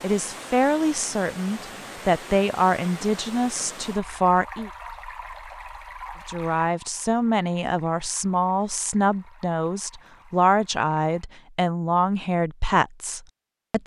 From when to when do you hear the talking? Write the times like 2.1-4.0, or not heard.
0.0-4.7, 6.2-13.8.